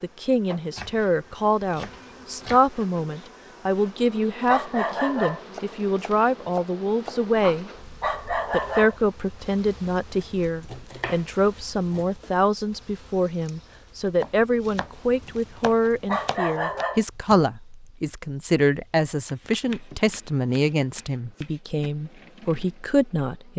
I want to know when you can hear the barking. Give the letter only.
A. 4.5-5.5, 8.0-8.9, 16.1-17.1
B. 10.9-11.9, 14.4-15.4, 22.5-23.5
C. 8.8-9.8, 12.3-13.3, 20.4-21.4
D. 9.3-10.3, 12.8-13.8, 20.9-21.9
A.